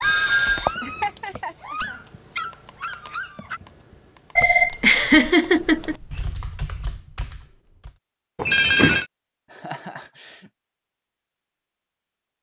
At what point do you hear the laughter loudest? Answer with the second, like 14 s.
5 s.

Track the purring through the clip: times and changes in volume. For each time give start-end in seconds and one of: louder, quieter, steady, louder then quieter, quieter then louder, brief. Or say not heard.
not heard.